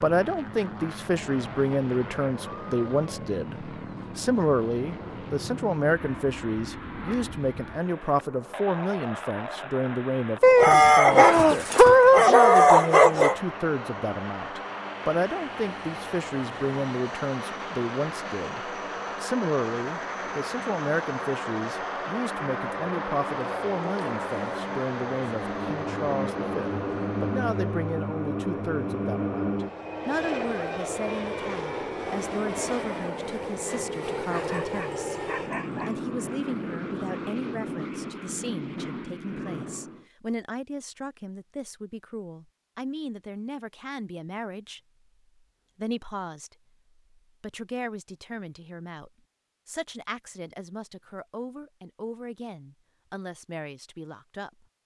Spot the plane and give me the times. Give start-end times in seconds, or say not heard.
0.0-40.0.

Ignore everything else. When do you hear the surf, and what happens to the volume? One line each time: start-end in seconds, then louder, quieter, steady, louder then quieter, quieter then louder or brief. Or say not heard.
not heard.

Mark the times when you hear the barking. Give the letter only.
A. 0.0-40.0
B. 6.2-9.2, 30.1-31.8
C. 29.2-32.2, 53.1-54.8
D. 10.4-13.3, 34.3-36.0
D.